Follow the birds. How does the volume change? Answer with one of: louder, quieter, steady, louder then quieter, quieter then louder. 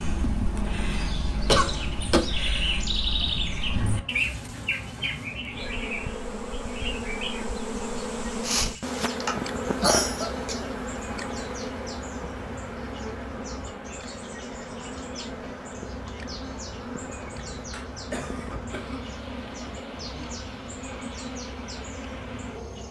quieter.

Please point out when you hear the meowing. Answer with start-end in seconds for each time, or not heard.
not heard.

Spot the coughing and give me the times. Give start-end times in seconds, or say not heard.
1.4-2.4, 8.4-10.6, 17.2-19.1.